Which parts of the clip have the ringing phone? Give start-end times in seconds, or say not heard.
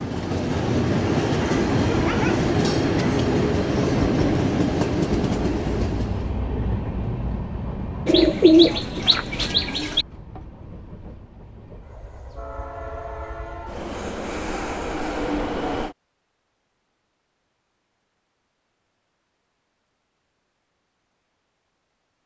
not heard.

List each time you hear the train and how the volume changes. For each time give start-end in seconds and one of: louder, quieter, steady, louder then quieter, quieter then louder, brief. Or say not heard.
0.0-15.9 quieter then louder.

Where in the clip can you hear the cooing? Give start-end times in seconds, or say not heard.
8.1-10.1.